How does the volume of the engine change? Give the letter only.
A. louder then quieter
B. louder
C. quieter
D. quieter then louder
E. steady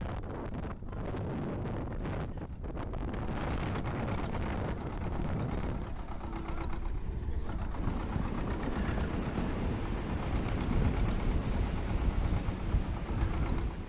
B.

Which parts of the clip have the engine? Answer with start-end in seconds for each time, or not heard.
0.1-13.8.